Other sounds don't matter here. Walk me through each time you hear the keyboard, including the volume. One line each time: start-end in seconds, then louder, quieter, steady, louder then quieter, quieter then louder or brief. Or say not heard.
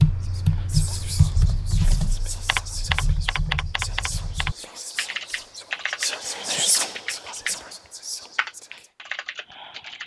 0.0-7.6 quieter
8.2-10.0 brief.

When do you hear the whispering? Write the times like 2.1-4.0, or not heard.
0.2-8.9.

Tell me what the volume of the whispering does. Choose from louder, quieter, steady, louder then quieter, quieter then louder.
louder then quieter.